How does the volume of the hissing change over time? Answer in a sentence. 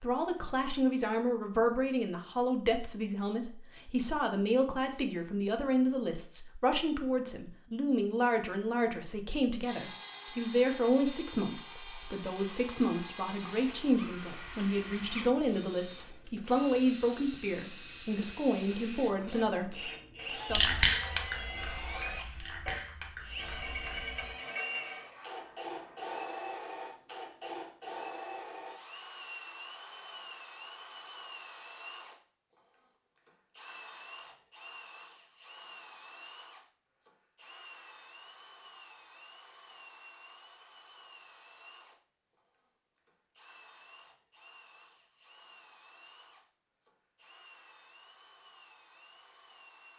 The loudness of the hissing goes up, then down.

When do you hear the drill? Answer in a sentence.
The drill can be heard from 9.7 to 49.9 s.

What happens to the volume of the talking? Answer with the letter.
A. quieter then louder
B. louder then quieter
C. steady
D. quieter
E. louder
C.